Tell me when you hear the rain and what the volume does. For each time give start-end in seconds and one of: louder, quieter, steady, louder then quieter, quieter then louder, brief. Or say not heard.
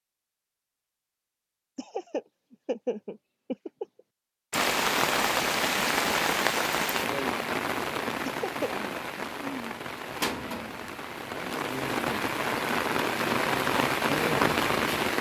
4.5-15.1 quieter then louder.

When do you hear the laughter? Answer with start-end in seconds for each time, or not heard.
1.8-3.9, 8.2-8.7.